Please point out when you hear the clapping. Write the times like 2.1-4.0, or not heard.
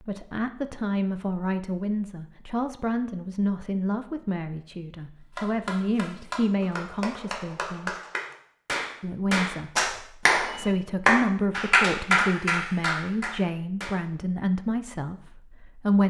5.3-13.9.